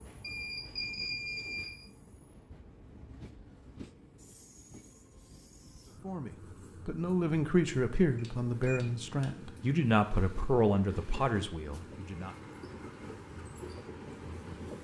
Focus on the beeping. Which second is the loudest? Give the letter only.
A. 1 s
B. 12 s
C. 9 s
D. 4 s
A.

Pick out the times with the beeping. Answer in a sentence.
You can hear the beeping from 0.2 to 1.9 s and from 8.2 to 9.2 s.